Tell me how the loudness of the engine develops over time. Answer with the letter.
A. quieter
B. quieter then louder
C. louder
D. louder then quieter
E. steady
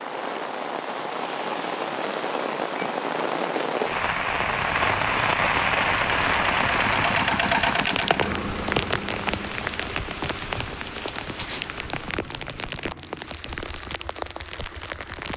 D.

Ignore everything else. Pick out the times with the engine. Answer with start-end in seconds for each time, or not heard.
4.3-15.3.